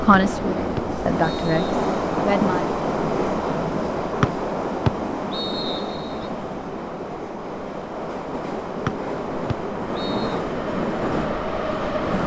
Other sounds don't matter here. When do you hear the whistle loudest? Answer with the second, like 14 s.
5 s.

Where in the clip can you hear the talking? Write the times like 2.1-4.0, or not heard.
0.0-2.6.